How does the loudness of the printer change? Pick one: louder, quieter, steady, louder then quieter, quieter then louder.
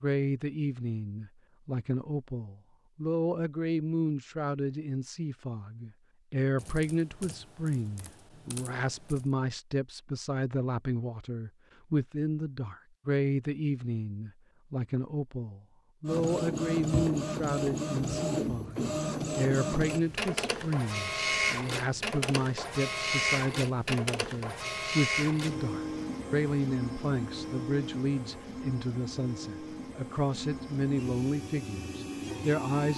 quieter.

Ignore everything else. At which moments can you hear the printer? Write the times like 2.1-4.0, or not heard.
16.1-32.9.